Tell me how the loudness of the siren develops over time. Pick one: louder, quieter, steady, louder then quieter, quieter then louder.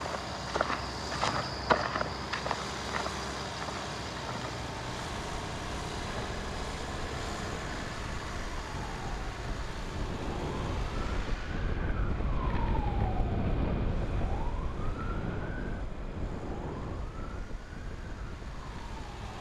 louder then quieter.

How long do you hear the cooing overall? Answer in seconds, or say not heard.
not heard.